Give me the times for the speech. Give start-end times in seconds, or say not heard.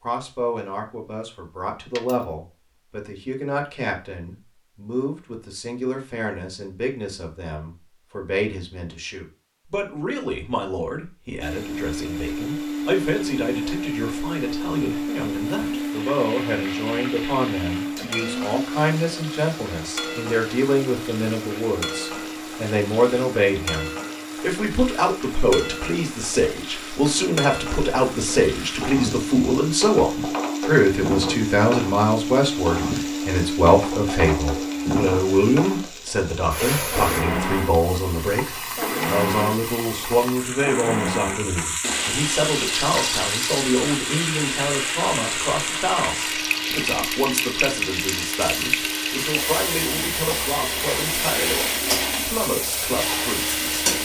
0.0-53.9.